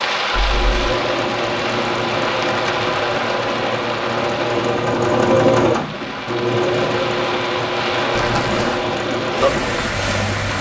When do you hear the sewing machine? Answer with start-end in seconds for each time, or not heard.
0.0-10.5.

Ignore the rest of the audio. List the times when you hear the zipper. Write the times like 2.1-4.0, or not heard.
0.3-0.9, 8.2-8.8.